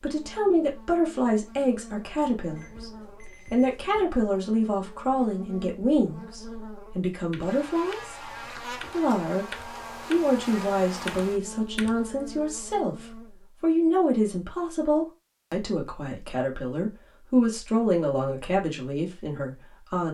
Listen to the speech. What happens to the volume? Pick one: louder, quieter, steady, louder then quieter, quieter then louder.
steady.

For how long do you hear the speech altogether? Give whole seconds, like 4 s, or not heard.
20 s.